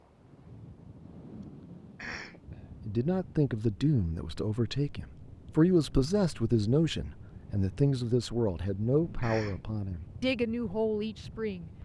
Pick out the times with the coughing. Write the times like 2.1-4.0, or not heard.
1.9-2.4, 9.2-9.6.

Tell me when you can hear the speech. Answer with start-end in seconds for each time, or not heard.
2.9-11.7.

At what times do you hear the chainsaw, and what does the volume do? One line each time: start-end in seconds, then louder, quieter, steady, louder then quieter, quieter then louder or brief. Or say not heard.
not heard.